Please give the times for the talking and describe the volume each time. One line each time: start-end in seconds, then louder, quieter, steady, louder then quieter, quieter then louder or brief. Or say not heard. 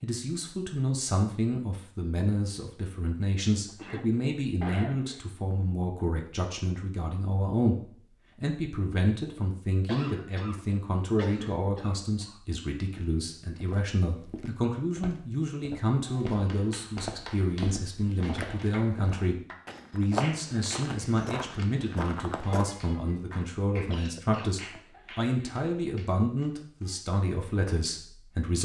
0.0-28.6 steady.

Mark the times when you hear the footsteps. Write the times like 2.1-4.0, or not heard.
12.9-22.7.